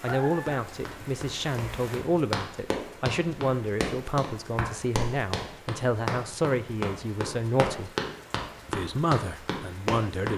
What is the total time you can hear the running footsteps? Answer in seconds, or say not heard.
10 s.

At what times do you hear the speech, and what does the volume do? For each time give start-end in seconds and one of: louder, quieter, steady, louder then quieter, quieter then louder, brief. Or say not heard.
0.0-7.9 steady
8.7-10.3 brief.